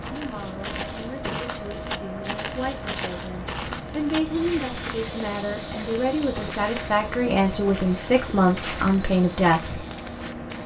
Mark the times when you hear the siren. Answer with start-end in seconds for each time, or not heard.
not heard.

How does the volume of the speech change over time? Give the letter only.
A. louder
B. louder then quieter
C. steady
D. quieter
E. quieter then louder
A.